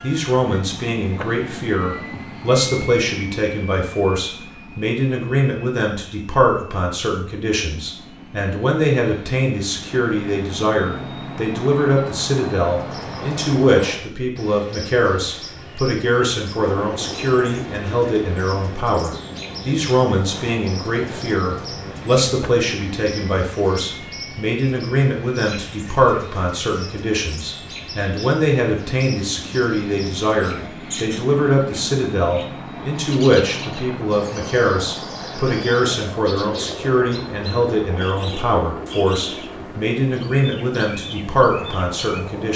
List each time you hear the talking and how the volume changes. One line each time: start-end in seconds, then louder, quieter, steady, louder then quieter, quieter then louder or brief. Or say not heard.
0.0-42.5 steady.